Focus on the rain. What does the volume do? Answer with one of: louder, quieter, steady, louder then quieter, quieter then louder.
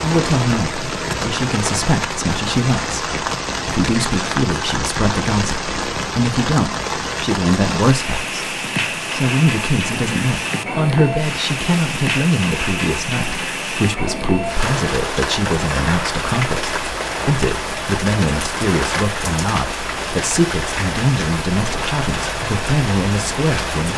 steady.